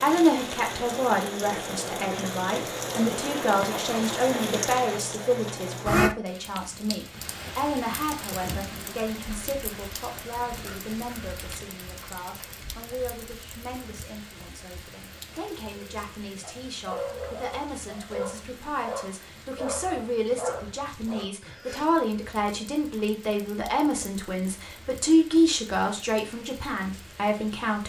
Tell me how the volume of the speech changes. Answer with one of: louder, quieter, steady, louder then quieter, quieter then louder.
quieter then louder.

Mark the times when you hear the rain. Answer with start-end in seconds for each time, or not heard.
0.0-27.8.